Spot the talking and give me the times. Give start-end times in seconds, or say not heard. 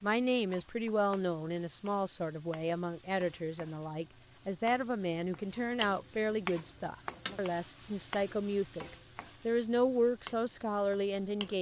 0.0-11.5.